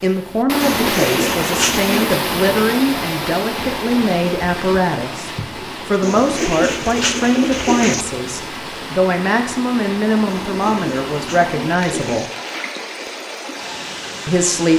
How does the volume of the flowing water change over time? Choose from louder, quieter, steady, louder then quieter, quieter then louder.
quieter.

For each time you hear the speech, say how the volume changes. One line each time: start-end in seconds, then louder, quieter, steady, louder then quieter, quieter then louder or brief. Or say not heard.
0.0-12.2 steady
14.2-14.7 brief.